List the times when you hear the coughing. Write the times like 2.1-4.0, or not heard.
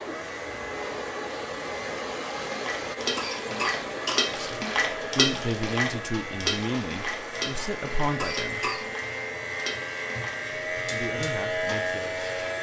3.1-4.2, 8.2-8.8.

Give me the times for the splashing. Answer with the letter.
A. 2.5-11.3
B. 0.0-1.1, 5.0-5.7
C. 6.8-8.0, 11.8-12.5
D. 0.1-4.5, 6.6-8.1
A.